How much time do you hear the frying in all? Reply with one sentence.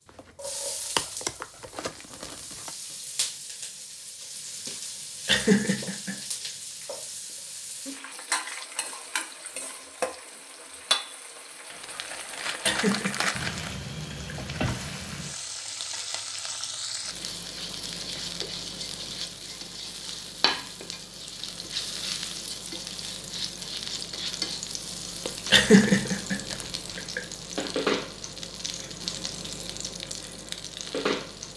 The frying can be heard for 31 seconds in total.